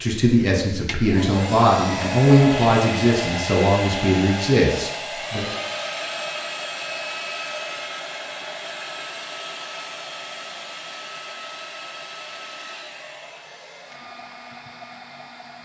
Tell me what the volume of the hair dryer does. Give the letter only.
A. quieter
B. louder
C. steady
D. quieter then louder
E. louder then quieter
A.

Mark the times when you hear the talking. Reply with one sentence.
You can hear the talking from 0.0 to 5.5 s.